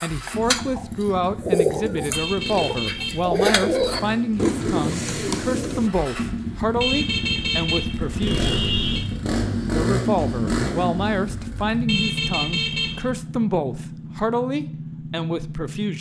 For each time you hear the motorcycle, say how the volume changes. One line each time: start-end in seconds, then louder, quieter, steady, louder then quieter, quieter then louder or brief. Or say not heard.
0.0-15.9 louder then quieter.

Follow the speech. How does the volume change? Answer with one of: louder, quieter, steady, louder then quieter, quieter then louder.
steady.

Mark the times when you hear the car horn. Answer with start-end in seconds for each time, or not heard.
2.1-3.4, 6.8-9.1, 11.8-13.2.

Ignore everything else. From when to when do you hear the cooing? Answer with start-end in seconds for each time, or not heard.
0.0-5.9.